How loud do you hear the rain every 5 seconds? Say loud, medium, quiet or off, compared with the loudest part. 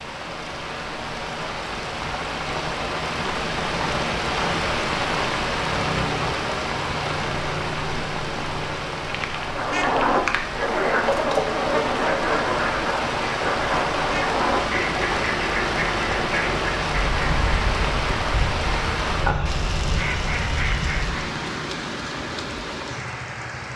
loud, loud, loud, loud, medium.